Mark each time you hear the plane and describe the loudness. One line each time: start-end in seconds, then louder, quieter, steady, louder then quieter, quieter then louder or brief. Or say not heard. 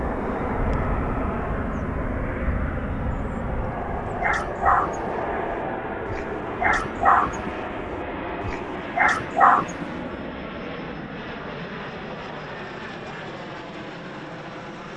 0.0-14.9 quieter.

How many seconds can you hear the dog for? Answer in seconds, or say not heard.
6 s.